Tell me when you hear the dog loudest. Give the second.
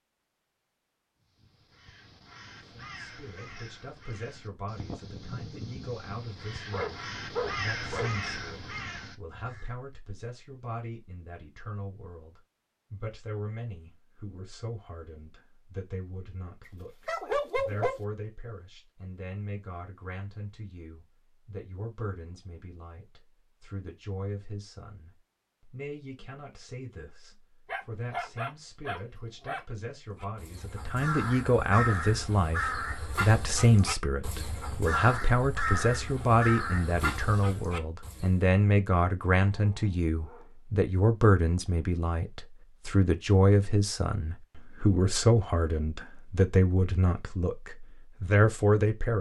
17 s.